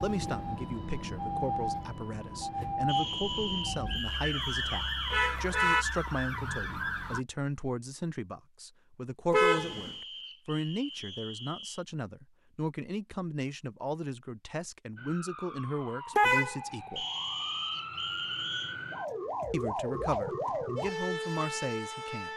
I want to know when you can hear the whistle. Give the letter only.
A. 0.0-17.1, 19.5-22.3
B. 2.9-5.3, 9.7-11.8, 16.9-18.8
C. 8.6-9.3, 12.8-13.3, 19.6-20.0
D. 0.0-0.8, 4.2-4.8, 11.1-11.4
B.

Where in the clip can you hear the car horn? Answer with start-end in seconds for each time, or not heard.
5.1-5.8, 9.3-9.9, 16.1-16.6.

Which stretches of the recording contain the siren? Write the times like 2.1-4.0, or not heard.
0.0-7.2, 14.9-22.3.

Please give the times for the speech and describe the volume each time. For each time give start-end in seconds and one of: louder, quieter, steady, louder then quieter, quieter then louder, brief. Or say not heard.
0.0-17.1 steady
19.5-22.3 brief.